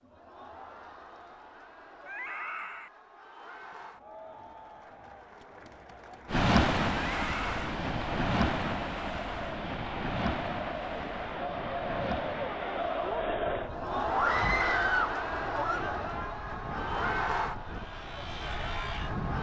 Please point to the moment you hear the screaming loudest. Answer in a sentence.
The volume of the screaming peaks at 15 seconds.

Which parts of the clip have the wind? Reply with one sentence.
You can hear the wind from 6.2 to 19.3 s.